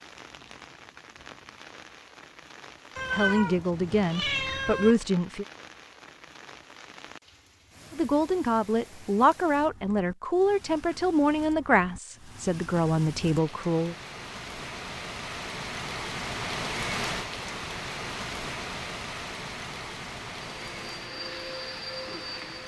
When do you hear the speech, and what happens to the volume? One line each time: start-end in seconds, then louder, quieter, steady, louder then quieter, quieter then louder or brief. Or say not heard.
3.1-5.5 brief
7.9-13.9 steady.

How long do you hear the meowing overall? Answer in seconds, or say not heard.
2 s.